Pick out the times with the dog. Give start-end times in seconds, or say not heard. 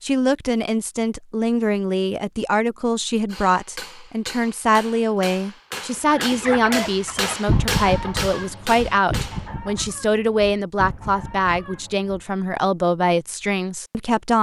not heard.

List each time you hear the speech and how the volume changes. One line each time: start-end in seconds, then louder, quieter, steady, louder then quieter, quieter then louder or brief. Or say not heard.
0.0-14.3 steady.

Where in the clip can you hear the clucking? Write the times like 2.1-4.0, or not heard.
6.1-12.2.